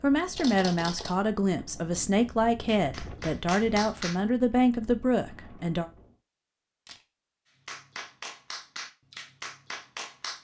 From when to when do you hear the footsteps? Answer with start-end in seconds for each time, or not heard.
not heard.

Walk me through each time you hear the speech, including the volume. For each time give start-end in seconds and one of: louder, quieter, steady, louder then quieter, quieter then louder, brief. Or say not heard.
0.0-5.9 steady.